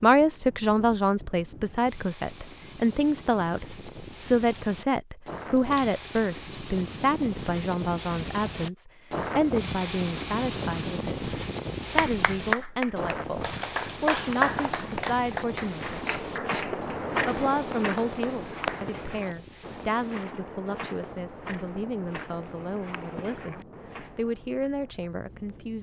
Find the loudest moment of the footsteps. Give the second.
17 s.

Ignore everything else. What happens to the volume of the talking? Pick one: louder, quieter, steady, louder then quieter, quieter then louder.
quieter.